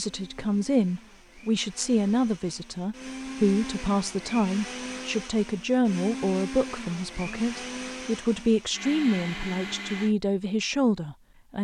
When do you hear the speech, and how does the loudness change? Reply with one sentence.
You can hear the speech from 0.0 to 11.6 s, at a steady volume.